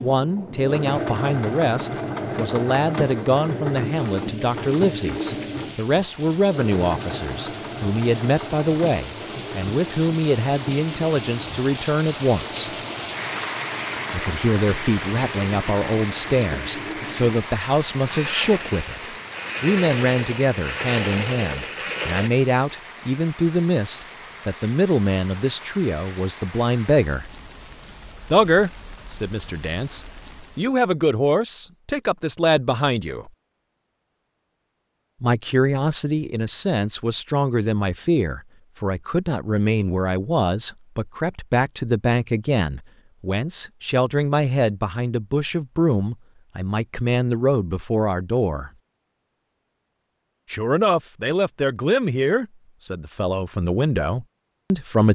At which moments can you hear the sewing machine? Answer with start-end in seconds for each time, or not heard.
0.0-22.3.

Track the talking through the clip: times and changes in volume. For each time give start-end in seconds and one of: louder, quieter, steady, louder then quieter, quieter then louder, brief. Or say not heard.
0.0-12.7 steady
14.1-27.2 steady
28.3-33.3 louder
35.2-48.7 steady
50.5-55.1 quieter then louder.